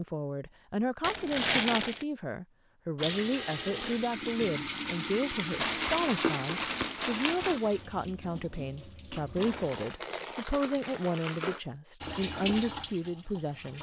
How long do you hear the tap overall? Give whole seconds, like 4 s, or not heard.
9 s.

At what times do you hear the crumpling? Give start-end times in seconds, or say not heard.
1.0-2.0, 5.5-7.6, 9.3-11.6.